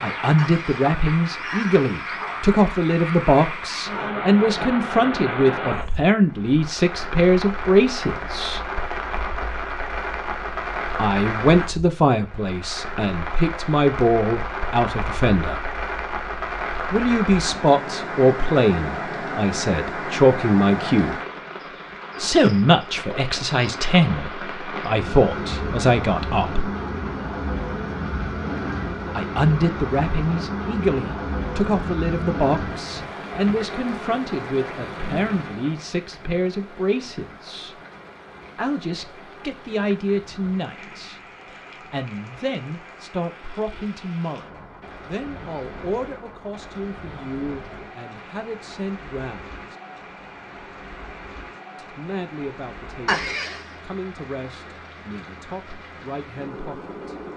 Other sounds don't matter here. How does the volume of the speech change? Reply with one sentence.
The loudness of the speech goes down.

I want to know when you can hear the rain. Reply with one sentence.
The rain can be heard from 0.0 to 57.3 s.